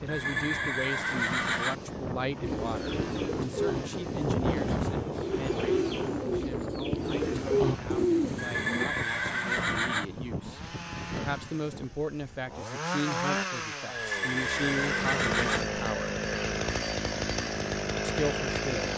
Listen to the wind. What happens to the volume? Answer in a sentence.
The loudness of the wind goes up, then down.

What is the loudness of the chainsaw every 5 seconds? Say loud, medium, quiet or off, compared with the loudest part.
quiet, quiet, medium, loud.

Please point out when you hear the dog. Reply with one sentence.
The dog can't be heard in this clip.